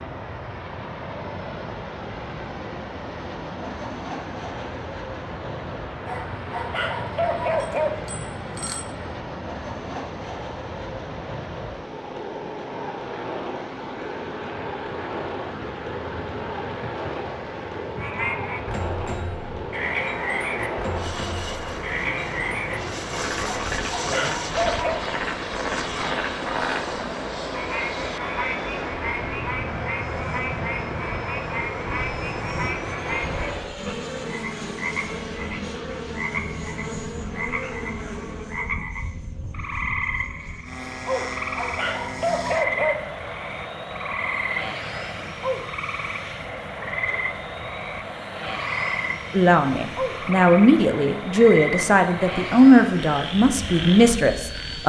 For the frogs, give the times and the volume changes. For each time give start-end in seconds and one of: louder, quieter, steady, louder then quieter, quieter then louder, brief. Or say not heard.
17.9-54.8 steady.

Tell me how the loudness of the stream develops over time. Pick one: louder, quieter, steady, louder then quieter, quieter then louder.
louder.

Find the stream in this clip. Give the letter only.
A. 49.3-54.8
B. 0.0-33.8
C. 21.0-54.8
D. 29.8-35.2
B.